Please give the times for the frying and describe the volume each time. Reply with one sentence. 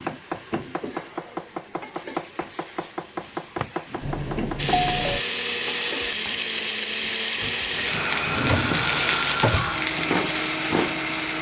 The frying can be heard from 0.0 to 11.3 s, getting louder.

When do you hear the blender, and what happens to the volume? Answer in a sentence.
The blender can be heard from 4.5 to 11.3 s, at a steady volume.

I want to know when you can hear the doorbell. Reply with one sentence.
You can hear the doorbell from 4.0 to 5.2 s.